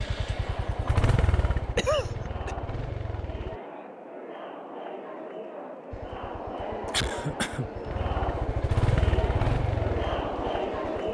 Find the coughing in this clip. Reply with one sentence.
You can hear the coughing from 1.8 to 2.5 s and from 6.8 to 7.7 s.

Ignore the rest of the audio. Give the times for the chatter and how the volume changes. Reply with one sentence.
The chatter can be heard from 0.0 to 11.0 s, getting louder.